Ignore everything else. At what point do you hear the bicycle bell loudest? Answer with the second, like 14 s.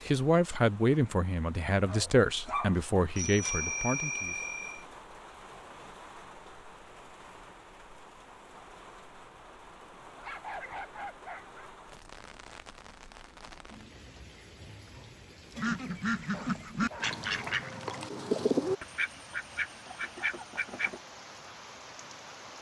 4 s.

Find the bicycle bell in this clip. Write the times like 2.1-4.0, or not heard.
3.1-4.8.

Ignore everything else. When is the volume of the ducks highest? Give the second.
18 s.